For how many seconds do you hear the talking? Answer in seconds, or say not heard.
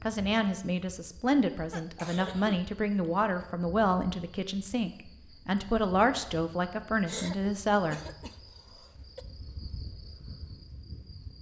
8 s.